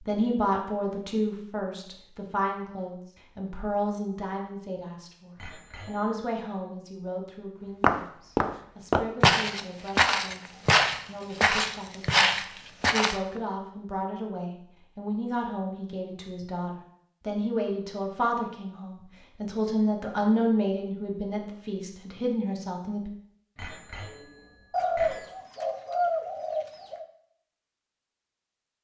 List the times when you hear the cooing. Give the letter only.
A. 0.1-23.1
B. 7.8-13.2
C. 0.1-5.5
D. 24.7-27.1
D.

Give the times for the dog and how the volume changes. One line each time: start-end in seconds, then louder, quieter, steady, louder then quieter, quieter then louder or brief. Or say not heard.
not heard.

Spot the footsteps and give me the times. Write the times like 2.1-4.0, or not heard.
7.8-13.2.